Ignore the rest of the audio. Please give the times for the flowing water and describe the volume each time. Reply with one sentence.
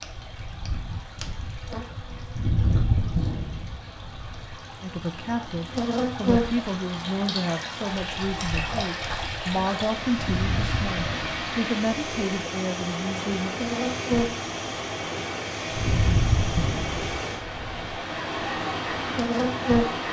The flowing water can be heard from 0.0 to 20.0 s, getting louder.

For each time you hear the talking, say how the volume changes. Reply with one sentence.
The talking can be heard from 4.8 to 13.6 s, at a steady volume.